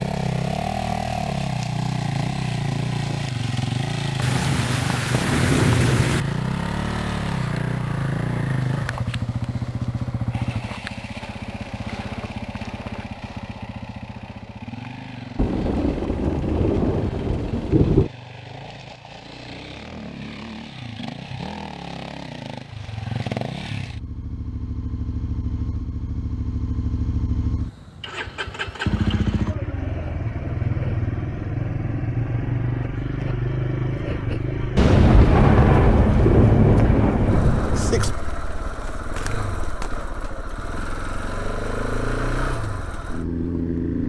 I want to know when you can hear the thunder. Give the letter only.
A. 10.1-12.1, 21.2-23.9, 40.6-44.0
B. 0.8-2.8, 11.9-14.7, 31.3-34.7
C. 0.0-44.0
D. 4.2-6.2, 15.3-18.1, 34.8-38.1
D.